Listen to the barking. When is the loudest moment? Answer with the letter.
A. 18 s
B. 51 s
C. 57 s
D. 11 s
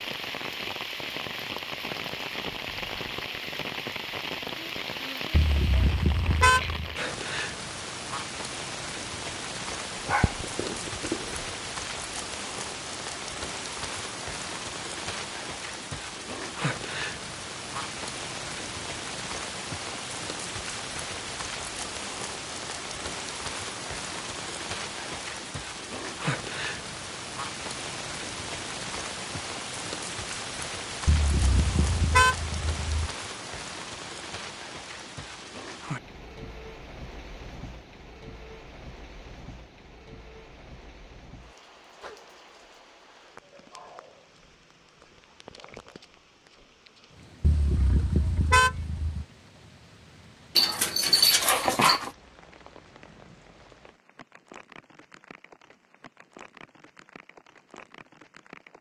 B.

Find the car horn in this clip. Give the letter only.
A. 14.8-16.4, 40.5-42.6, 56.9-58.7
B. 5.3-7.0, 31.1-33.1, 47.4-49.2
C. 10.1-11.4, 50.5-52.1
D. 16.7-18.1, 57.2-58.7
B.